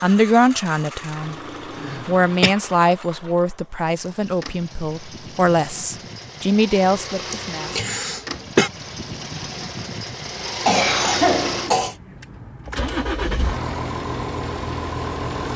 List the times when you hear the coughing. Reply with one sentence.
You can hear the coughing from 1.8 to 2.5 s, from 7.3 to 8.7 s and from 10.6 to 11.9 s.